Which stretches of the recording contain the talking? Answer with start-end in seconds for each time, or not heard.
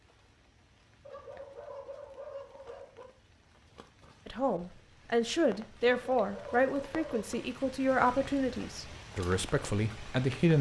4.2-10.5.